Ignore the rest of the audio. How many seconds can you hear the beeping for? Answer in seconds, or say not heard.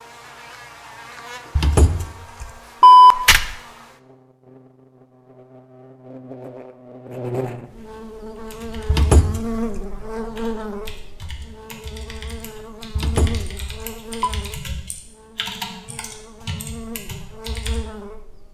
4 s.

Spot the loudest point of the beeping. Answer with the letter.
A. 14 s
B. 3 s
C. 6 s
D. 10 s
B.